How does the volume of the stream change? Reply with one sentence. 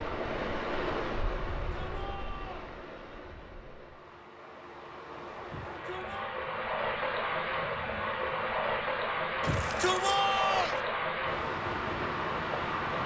The volume of the stream goes down, then up.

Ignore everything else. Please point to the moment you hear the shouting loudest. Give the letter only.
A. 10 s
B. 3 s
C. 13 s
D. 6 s
A.